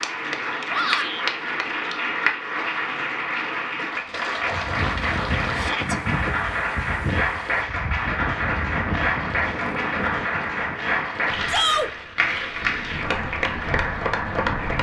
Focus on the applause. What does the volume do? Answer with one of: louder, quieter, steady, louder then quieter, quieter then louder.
steady.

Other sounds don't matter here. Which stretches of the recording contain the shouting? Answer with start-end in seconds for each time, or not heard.
0.7-1.2, 5.5-6.0, 11.4-11.9.